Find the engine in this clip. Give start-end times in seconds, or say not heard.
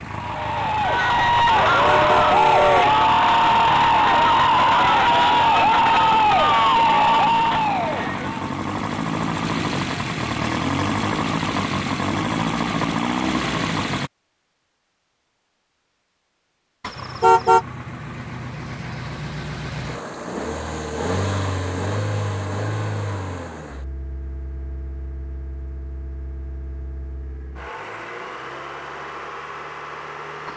0.0-14.1, 16.9-30.5.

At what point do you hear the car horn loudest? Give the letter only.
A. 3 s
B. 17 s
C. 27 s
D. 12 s
B.